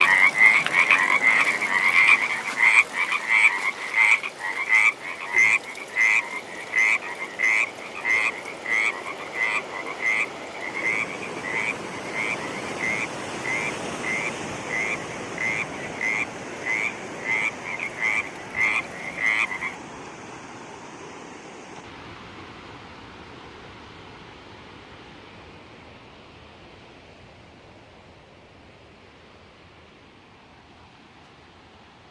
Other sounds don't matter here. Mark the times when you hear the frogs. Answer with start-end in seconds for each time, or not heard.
0.0-19.8.